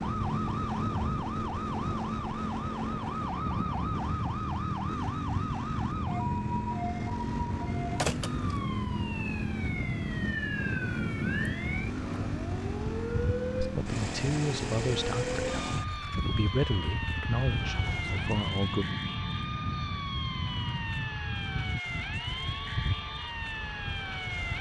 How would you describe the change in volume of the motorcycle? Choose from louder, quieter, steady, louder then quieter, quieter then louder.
steady.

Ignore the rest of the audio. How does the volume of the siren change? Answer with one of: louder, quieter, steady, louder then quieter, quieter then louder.
steady.